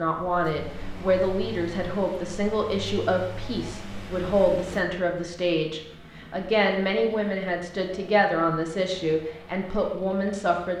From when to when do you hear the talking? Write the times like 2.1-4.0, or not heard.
0.0-10.7.